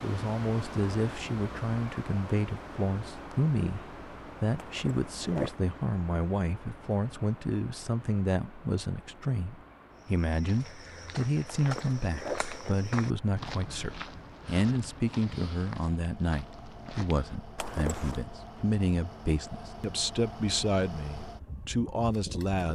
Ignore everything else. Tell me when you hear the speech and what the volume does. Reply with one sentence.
The speech can be heard from 0.0 to 22.7 s, at a steady volume.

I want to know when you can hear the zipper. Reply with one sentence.
You can hear the zipper from 4.5 to 5.6 s, from 11.4 to 12.9 s and from 17.6 to 18.2 s.